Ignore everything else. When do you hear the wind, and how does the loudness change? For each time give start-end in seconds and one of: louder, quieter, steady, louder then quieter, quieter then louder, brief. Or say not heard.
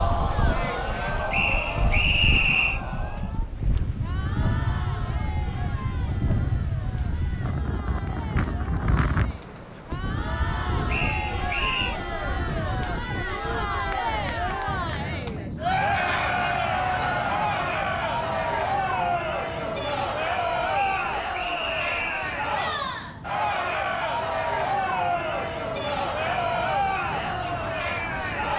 0.0-28.5 quieter.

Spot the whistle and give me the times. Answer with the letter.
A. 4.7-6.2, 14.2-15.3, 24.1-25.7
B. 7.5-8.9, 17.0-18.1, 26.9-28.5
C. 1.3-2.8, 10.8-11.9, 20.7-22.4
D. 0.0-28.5
C.